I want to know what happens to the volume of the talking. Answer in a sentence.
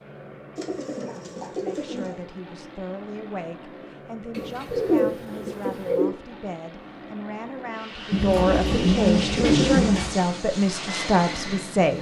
The loudness of the talking goes up.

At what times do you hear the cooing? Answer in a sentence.
You can hear the cooing from 0.6 to 2.1 s, from 4.3 to 6.2 s and from 8.1 to 10.1 s.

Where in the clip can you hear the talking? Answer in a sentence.
You can hear the talking from 1.5 to 11.9 s.